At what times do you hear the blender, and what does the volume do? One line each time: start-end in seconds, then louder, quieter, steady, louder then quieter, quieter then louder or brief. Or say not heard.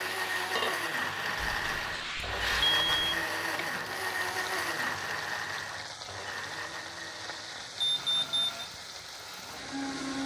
0.0-10.2 quieter.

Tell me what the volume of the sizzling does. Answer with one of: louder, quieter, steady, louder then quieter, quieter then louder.
quieter.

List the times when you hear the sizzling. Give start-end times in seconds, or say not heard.
0.0-10.2.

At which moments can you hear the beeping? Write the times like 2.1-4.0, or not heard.
1.4-3.2, 7.8-8.7.